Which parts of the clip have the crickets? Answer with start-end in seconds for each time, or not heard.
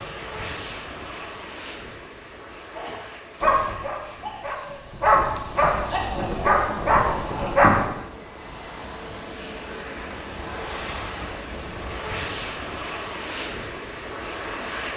not heard.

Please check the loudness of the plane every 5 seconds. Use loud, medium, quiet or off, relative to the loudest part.
medium, medium, loud.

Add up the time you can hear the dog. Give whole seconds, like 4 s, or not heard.
5 s.